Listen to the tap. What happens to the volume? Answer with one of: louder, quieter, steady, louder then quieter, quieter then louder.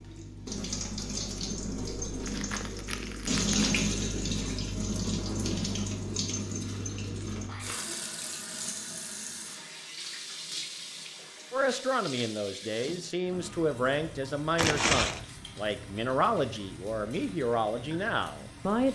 quieter.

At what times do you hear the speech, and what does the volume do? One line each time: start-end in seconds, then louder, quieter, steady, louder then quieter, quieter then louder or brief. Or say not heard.
11.5-18.9 steady.